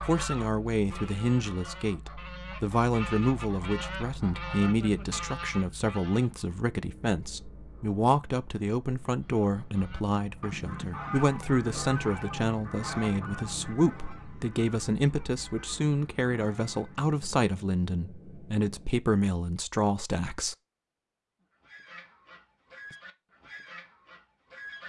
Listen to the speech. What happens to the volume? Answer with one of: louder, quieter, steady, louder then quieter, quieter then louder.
steady.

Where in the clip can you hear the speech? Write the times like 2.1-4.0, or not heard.
0.1-20.6.